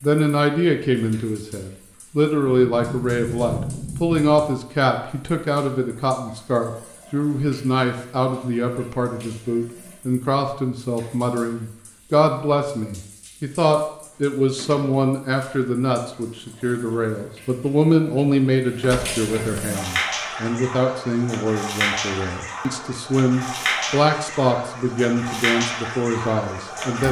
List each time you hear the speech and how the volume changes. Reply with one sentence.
The speech can be heard from 0.0 to 27.0 s, at a steady volume.